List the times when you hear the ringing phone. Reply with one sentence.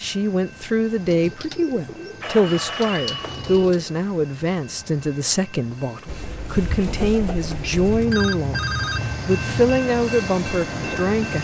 You can hear the ringing phone from 2.2 to 3.6 s and from 7.8 to 9.8 s.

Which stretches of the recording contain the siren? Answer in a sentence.
The siren can't be heard in this clip.